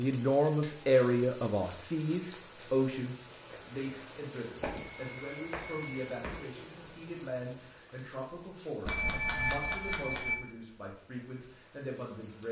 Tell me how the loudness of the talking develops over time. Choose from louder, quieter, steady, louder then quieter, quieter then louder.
quieter.